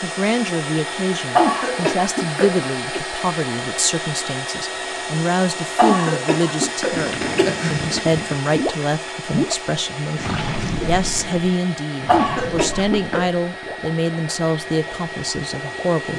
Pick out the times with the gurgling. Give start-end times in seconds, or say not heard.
6.9-16.1.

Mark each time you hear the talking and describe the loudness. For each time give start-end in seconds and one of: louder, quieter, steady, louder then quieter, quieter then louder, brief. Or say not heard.
0.0-16.1 steady.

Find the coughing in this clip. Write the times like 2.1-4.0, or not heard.
1.4-3.0, 5.8-7.8, 12.1-13.2.